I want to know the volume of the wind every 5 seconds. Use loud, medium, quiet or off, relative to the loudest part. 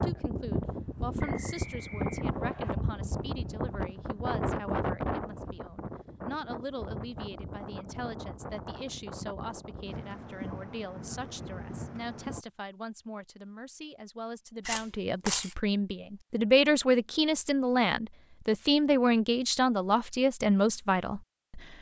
loud, medium, medium, off, off.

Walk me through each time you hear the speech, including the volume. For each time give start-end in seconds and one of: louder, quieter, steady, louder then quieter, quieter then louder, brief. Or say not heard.
0.0-21.7 louder.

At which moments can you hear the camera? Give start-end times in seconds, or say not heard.
14.7-15.6.